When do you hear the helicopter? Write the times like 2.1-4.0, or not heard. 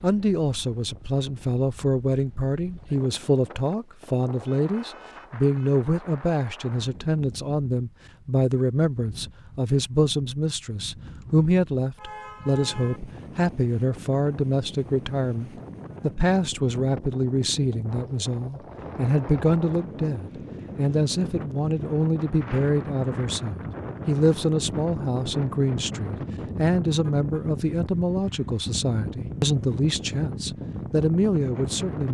not heard.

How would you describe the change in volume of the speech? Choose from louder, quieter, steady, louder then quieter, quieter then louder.
steady.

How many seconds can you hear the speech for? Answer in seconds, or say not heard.
32 s.